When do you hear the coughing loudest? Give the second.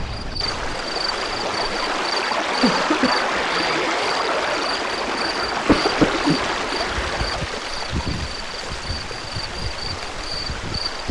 6 s.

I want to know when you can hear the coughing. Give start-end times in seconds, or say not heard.
2.6-3.2, 5.7-7.4.